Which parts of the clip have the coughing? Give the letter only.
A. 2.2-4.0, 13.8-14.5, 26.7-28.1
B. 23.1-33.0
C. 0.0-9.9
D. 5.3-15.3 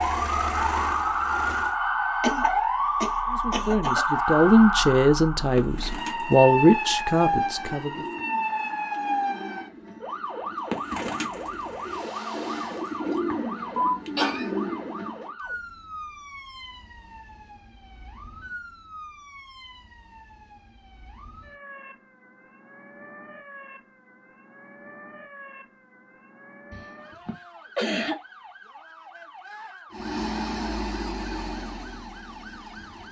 A.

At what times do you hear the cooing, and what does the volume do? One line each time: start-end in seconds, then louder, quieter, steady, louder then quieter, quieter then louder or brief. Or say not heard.
5.3-15.3 louder.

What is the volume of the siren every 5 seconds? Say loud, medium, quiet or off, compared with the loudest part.
loud, loud, medium, quiet, quiet, quiet, quiet.